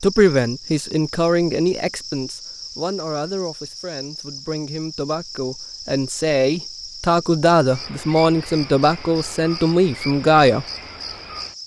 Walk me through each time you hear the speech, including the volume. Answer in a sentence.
You can hear the speech from 0.0 to 10.7 s, getting quieter then louder.